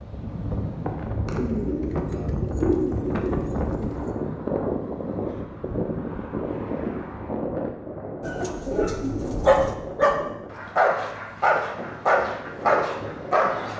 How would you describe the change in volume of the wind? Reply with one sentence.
The volume of the wind goes down.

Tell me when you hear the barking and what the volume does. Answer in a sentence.
You can hear the barking from 9.4 to 13.7 s, at a steady volume.